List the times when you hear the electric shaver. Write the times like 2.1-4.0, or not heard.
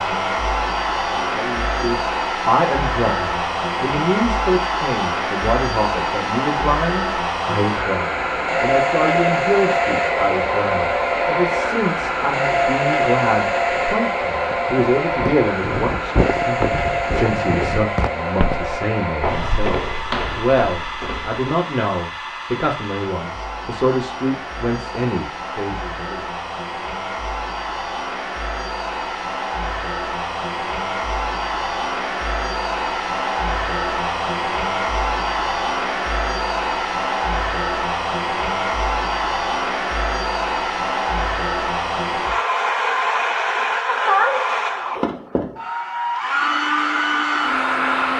not heard.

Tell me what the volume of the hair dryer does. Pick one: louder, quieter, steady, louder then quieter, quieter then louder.
quieter then louder.